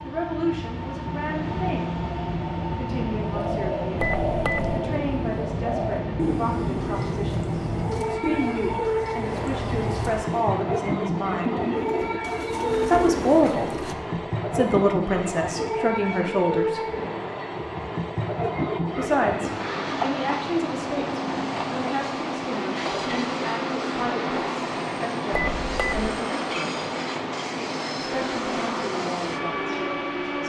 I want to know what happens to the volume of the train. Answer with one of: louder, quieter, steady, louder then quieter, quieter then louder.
steady.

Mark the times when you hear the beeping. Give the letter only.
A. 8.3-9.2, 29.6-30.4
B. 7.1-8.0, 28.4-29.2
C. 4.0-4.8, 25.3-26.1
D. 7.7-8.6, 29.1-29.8
C.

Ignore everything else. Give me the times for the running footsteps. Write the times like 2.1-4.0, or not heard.
not heard.